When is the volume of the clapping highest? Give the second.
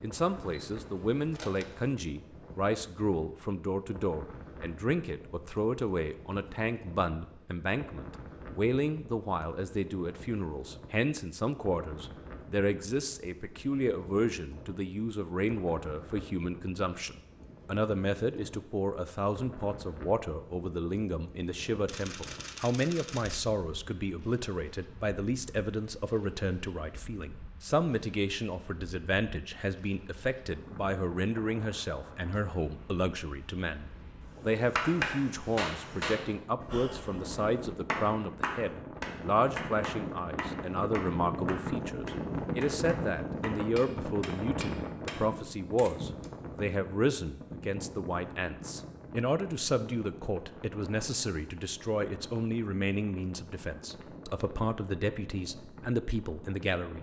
35 s.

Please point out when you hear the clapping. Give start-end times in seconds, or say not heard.
34.8-45.2.